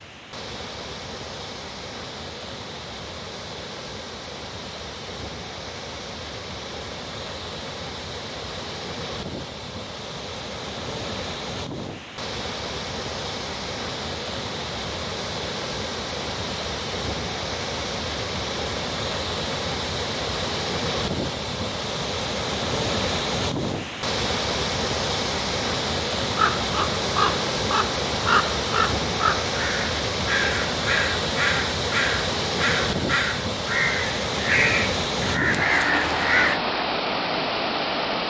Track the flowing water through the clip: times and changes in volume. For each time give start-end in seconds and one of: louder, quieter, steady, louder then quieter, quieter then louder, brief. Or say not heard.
0.0-38.2 louder.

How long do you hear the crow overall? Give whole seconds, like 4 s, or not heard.
10 s.